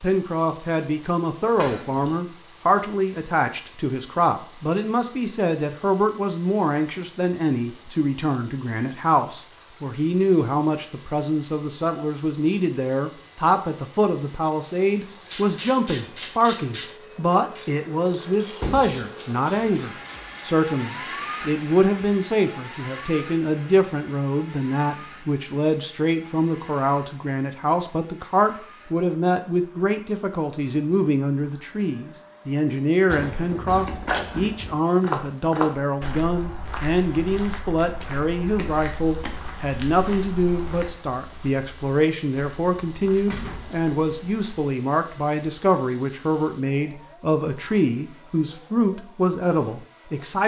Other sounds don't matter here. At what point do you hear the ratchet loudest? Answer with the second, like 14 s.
16 s.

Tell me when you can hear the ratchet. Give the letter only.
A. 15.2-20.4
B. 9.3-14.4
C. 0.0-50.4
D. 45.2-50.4
A.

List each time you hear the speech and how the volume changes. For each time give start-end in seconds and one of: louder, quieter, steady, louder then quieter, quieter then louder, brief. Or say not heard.
0.0-50.4 steady.